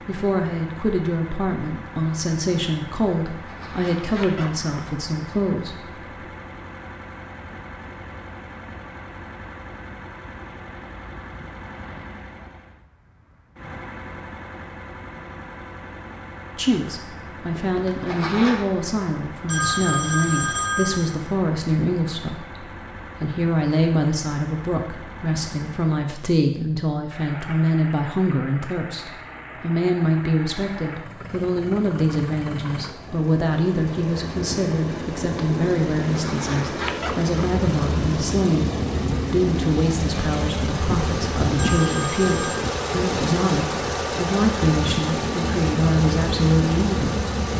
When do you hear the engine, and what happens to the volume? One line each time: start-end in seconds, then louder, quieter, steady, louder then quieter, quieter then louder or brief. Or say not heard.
0.0-47.5 louder.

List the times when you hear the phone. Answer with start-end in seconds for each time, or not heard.
19.4-21.0, 41.5-42.7.